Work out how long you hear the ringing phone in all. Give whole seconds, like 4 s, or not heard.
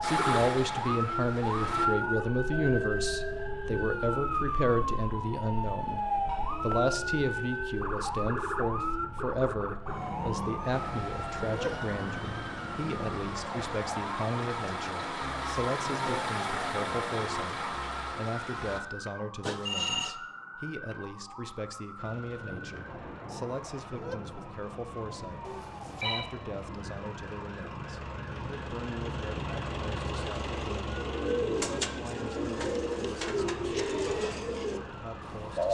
2 s.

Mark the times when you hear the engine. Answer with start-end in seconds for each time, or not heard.
0.0-1.9, 10.7-18.8, 21.9-35.6.